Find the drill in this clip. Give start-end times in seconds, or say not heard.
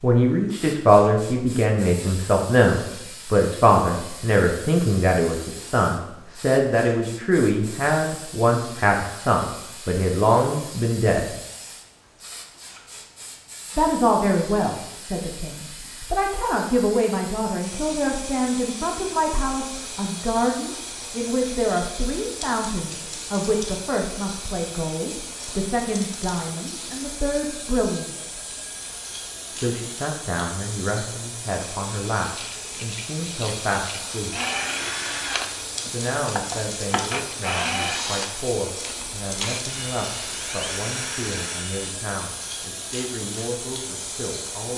34.3-42.0.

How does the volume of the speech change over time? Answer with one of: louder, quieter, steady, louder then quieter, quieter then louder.
quieter.